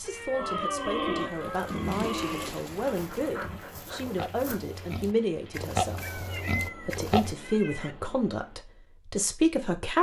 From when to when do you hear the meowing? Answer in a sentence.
You can hear the meowing from 0.0 to 2.0 s and from 6.0 to 8.0 s.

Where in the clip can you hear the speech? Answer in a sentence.
The speech can be heard from 0.0 to 9.9 s.